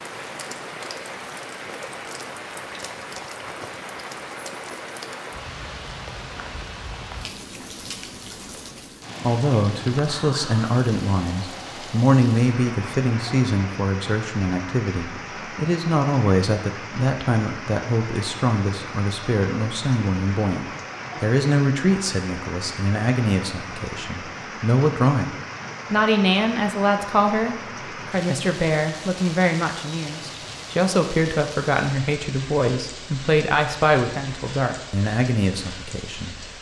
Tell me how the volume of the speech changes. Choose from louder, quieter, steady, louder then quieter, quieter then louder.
steady.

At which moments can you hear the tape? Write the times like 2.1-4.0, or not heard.
not heard.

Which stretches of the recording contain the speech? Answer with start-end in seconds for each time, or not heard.
9.2-36.4.